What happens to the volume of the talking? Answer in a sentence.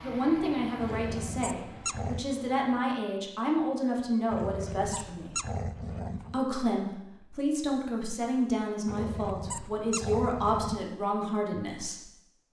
The loudness of the talking stays about the same.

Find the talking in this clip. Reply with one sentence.
You can hear the talking from 0.0 to 5.4 s and from 6.3 to 12.1 s.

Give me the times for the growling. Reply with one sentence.
The growling can be heard from 0.8 to 2.4 s, from 4.3 to 6.5 s and from 8.8 to 10.8 s.